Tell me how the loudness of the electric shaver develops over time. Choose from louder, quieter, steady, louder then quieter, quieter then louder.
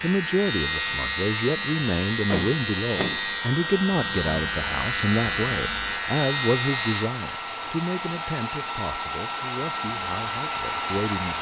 quieter.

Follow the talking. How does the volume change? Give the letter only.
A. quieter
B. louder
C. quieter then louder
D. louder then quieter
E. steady
A.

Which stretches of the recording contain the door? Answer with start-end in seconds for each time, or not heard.
2.2-3.2.